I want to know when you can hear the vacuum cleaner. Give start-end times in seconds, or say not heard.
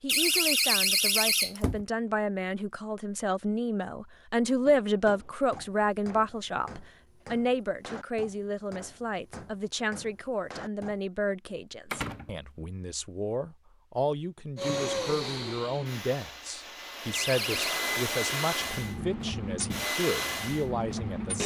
14.6-21.4.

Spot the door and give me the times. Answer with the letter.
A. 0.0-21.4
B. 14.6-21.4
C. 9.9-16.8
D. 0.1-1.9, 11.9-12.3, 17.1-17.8
D.